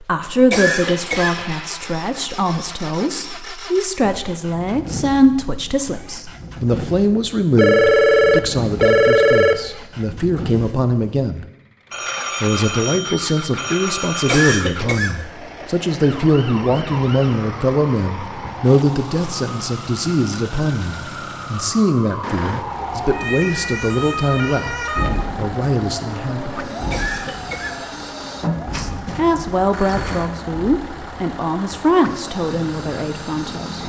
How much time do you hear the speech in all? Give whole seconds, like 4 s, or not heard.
30 s.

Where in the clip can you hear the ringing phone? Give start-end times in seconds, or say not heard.
7.5-9.6, 11.9-14.6, 28.4-30.3.